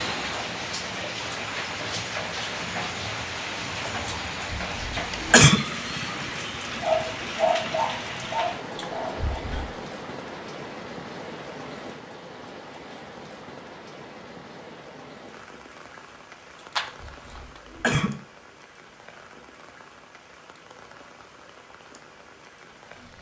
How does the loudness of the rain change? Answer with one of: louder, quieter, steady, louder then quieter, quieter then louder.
quieter.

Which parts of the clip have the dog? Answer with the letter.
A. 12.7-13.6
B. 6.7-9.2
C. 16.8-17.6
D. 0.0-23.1
B.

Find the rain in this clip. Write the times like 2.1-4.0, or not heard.
0.0-23.1.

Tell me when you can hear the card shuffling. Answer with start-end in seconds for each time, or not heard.
16.8-17.6.